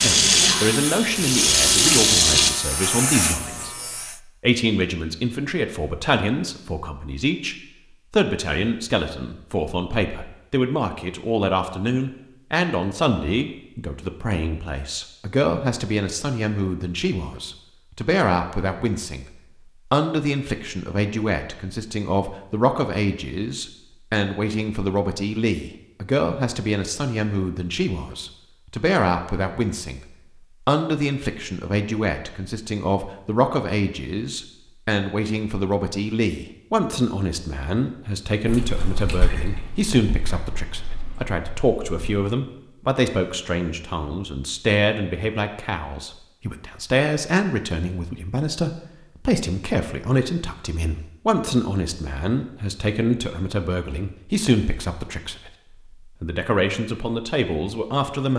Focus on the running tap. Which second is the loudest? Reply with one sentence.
The volume of the running tap peaks at 2 seconds.